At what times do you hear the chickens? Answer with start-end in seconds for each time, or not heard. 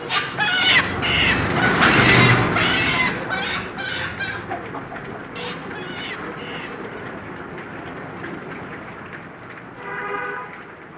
0.1-7.0.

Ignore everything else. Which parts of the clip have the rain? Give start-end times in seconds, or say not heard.
0.0-10.9.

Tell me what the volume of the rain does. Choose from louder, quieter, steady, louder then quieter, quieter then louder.
quieter.